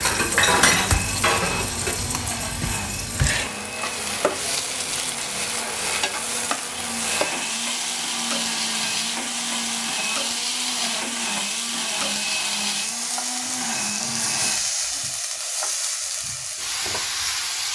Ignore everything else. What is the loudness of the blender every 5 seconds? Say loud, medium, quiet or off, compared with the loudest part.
loud, loud, loud, off.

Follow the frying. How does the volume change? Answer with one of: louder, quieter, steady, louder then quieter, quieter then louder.
steady.